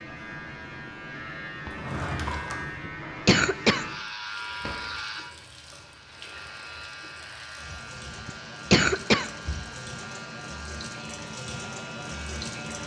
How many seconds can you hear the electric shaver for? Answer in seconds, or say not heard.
13 s.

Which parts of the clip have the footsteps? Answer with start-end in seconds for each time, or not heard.
not heard.